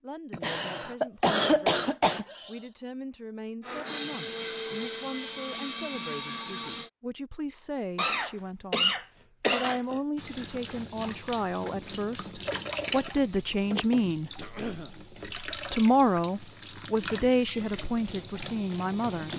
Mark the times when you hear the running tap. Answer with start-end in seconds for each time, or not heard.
10.2-19.3.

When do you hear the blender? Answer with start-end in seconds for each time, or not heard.
3.6-6.9.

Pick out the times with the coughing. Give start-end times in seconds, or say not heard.
0.3-2.6, 8.0-10.0, 14.3-14.9.